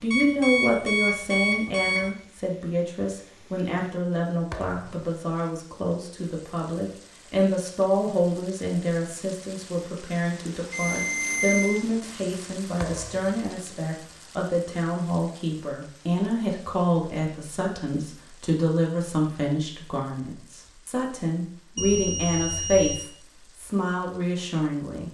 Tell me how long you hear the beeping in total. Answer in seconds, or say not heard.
4 s.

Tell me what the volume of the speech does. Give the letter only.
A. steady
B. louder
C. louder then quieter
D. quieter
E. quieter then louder
A.